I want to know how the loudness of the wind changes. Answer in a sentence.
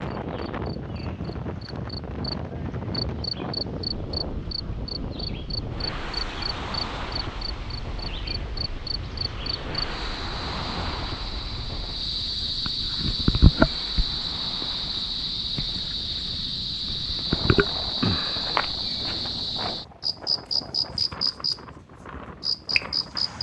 The loudness of the wind goes down.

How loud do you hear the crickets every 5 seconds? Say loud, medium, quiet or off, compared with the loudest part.
medium, medium, loud, loud, loud.